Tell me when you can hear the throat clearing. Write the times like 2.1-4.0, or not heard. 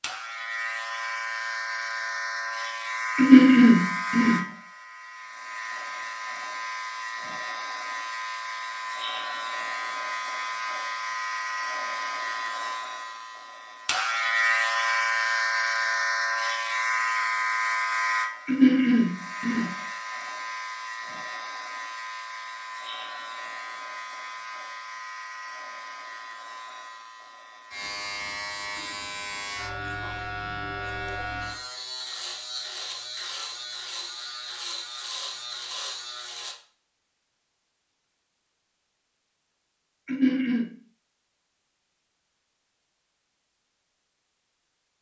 3.1-4.5, 18.4-19.8, 40.0-40.7.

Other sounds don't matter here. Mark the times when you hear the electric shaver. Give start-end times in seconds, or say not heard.
0.0-36.5.